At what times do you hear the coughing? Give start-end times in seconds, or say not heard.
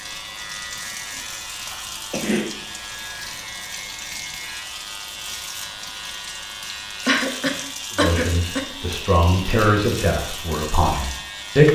1.6-2.6, 7.0-8.6.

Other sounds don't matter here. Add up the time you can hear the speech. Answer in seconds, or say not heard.
4 s.